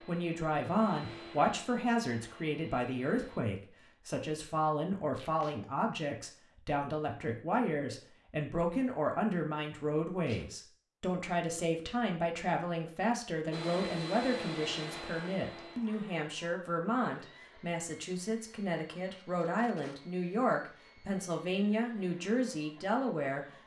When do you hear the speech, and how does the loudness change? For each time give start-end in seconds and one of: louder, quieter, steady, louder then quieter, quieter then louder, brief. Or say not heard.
0.0-23.4 steady.